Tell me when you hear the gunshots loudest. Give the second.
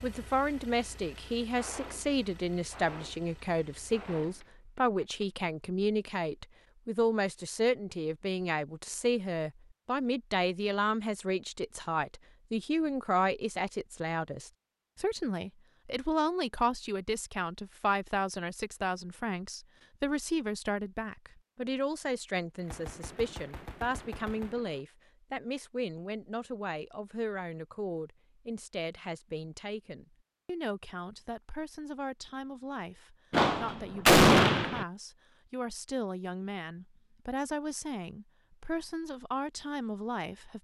34 s.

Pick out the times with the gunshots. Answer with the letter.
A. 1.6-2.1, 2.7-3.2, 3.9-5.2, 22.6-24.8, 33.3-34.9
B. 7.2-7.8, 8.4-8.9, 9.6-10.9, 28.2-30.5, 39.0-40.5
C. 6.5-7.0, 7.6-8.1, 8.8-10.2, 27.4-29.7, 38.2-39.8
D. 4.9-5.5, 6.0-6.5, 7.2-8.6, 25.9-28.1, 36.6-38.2
A.